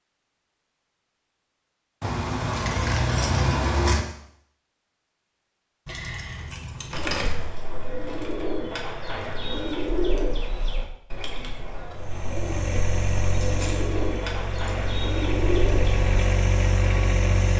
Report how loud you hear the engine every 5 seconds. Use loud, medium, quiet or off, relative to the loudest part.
off, off, medium, loud.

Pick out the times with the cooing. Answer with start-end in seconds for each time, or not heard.
7.0-16.1.